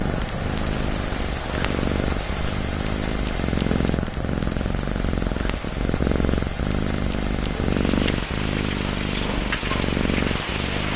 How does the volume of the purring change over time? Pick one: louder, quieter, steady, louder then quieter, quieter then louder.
steady.